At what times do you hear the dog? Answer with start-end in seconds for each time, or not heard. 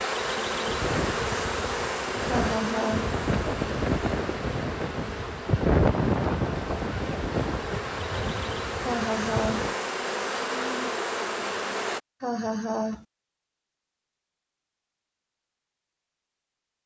not heard.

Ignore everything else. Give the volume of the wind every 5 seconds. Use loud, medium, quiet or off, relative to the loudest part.
loud, loud, off, off.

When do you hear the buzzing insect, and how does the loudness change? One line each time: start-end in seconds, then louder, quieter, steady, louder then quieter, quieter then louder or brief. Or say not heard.
0.0-12.0 quieter then louder.